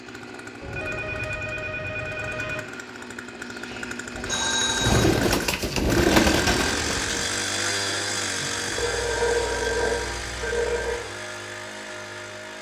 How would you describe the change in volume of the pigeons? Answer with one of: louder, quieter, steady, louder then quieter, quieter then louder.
louder then quieter.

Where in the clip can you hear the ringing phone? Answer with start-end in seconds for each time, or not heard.
0.6-2.6, 4.2-5.1, 8.8-11.0.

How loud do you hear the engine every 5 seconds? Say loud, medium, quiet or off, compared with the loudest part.
medium, loud, medium.